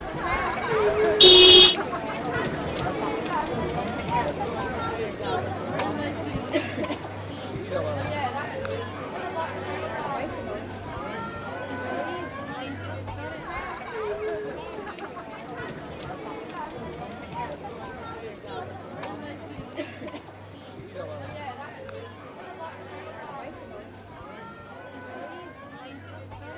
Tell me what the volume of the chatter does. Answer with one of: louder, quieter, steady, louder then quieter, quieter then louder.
quieter.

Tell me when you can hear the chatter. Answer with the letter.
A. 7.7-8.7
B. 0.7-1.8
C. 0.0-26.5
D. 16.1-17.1
C.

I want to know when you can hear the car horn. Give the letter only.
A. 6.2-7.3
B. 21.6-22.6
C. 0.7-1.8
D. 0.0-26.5
C.